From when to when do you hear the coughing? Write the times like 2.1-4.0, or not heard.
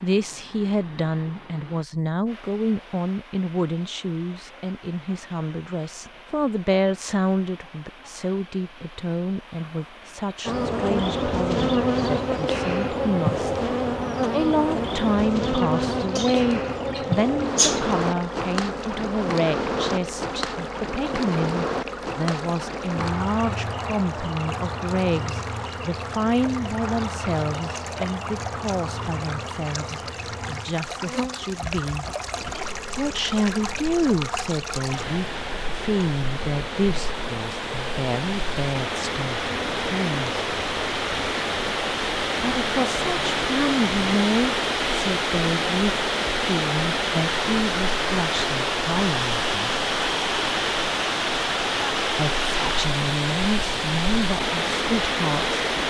16.1-17.9.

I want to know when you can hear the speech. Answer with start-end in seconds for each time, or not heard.
0.0-13.7, 14.3-32.0, 33.0-40.4, 42.4-49.7, 52.1-55.5.